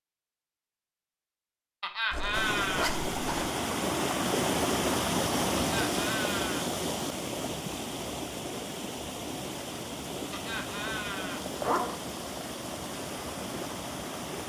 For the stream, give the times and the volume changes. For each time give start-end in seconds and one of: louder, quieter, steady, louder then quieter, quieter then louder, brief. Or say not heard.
2.3-14.4 quieter.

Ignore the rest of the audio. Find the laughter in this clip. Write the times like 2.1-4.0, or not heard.
1.8-2.9, 5.5-6.7, 10.3-11.4.